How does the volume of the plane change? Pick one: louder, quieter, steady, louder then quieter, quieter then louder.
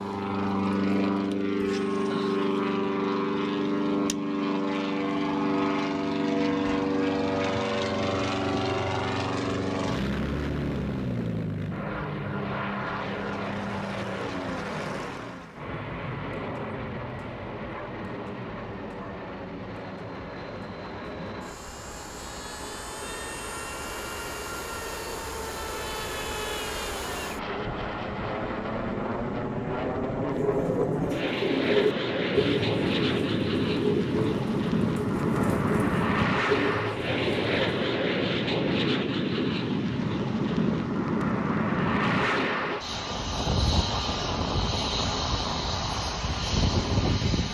quieter then louder.